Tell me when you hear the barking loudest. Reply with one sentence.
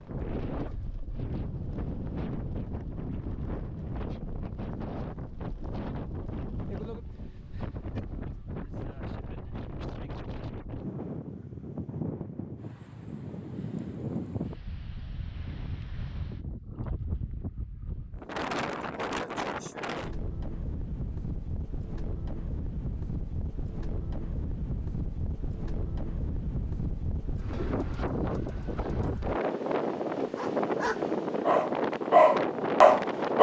The loudest moment of the barking is at 33 seconds.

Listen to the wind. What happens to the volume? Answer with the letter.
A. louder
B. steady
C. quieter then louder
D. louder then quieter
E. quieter
A.